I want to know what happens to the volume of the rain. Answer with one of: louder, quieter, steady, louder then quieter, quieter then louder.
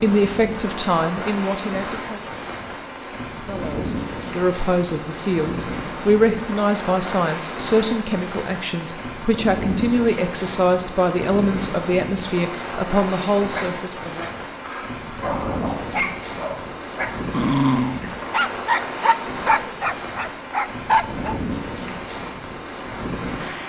steady.